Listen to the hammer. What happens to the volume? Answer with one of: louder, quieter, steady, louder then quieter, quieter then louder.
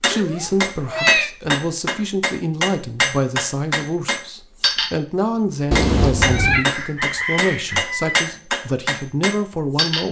steady.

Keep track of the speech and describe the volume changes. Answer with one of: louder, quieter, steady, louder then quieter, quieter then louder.
steady.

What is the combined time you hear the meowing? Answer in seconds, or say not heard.
2 s.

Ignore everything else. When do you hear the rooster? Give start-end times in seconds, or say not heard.
6.7-8.2.